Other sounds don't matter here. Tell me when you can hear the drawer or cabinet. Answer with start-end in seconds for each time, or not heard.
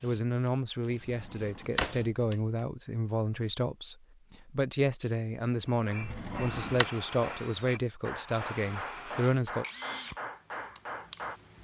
1.0-2.1, 6.0-6.8.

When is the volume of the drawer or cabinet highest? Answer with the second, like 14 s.
2 s.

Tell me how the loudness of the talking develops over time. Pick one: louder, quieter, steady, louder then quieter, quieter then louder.
steady.